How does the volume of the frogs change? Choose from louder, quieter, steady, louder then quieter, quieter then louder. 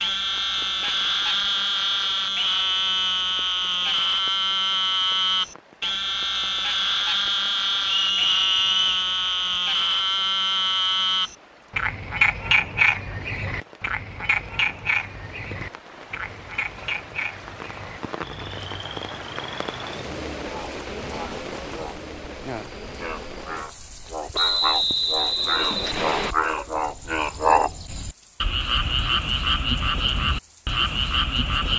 quieter then louder.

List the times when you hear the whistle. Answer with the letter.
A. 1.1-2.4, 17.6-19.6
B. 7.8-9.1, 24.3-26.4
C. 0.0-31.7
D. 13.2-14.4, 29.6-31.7
B.